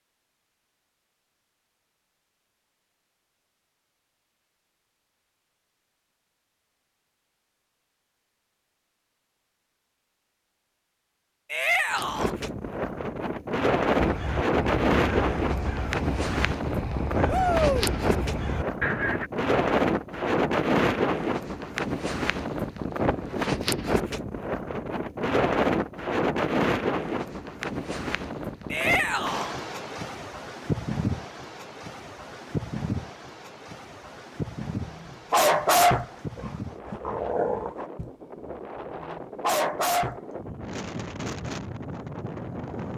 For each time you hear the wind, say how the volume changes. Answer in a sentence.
You can hear the wind from 11.9 to 42.9 s, getting quieter.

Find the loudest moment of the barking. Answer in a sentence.
The loudest moment of the barking is at 36 seconds.